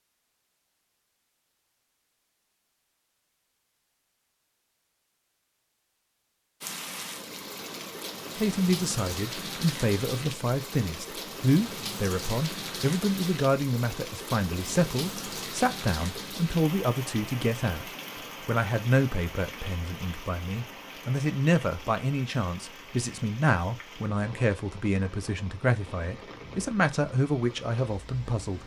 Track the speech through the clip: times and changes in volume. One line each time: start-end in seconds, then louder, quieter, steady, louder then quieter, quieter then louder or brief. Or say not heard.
8.3-28.6 steady.